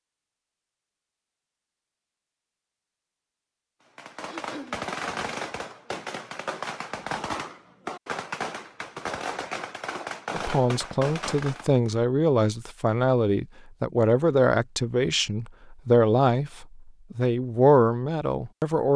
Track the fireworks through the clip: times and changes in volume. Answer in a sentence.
The fireworks can be heard from 4.0 to 11.8 s, at a steady volume.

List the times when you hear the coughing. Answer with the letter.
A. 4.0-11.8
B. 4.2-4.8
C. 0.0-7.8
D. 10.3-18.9
B.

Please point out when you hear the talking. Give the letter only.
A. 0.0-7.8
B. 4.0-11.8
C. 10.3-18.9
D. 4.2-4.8
C.